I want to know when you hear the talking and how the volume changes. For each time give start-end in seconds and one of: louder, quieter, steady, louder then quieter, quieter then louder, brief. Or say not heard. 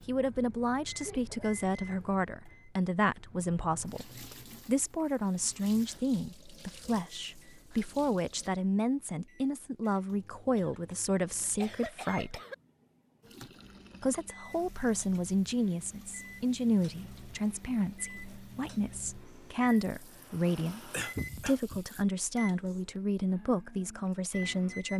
0.1-12.4 steady
14.0-24.9 steady.